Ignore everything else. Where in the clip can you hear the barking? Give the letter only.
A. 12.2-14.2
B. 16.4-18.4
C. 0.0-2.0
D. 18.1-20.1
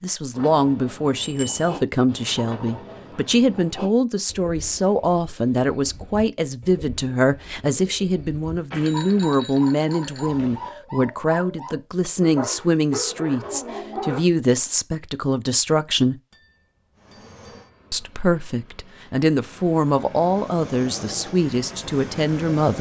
A.